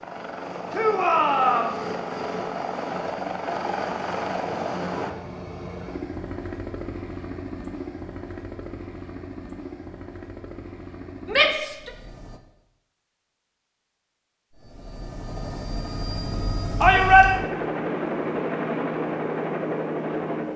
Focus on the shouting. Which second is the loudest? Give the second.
17 s.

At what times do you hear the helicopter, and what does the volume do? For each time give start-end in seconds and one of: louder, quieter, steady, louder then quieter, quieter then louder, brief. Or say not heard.
0.0-12.4 quieter
14.5-20.5 louder.